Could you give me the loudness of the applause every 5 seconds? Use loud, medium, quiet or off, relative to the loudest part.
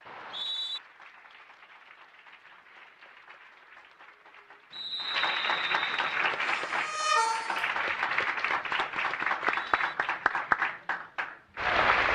quiet, loud, loud.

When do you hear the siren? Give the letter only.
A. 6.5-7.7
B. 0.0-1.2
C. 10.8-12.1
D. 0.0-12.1
A.